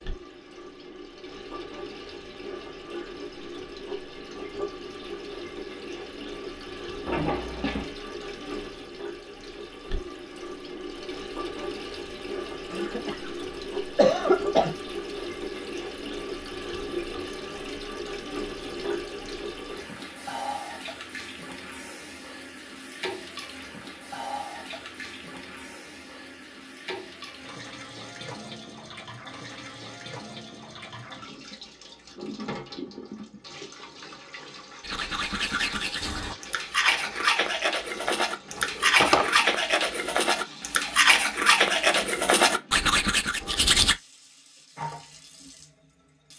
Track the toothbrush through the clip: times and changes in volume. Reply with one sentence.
You can hear the toothbrush from 34.8 to 44.0 s, getting louder.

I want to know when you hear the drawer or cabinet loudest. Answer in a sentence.
The volume of the drawer or cabinet peaks at 39 seconds.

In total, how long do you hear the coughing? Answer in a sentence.
You can hear the coughing for 2 seconds altogether.